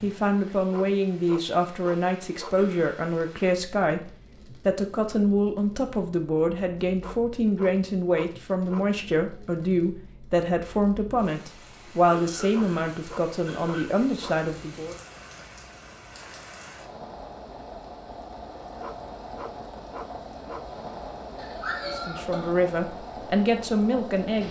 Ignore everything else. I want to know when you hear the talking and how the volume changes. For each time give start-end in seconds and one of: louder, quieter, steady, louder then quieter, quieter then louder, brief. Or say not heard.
0.0-14.9 steady
21.9-24.4 brief.